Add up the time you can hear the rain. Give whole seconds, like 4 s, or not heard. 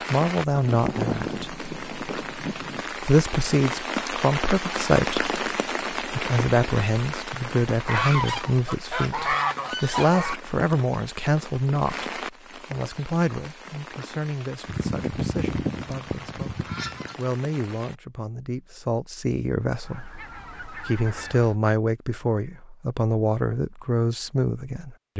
18 s.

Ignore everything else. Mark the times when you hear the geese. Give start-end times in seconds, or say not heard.
0.6-2.8, 7.8-10.4, 14.7-17.1, 19.8-21.6.